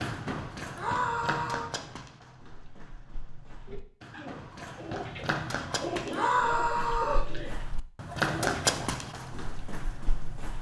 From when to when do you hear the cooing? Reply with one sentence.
The cooing can be heard from 3.6 to 9.0 s.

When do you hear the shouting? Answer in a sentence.
The shouting can be heard from 0.8 to 1.7 s and from 6.1 to 7.3 s.